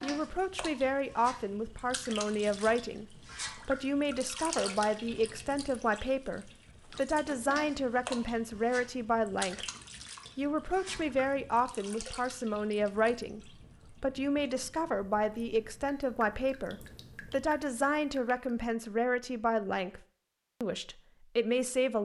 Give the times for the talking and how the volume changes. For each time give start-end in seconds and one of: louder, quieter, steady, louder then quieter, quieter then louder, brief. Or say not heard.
0.0-9.7 steady
10.3-20.0 steady
20.6-22.0 brief.